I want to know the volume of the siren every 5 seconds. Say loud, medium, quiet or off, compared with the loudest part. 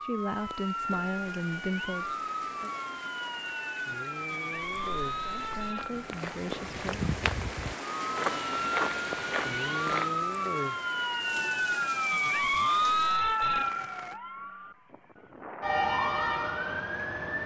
medium, medium, loud, loud.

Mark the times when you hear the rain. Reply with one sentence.
The rain can be heard from 0.0 to 14.2 s.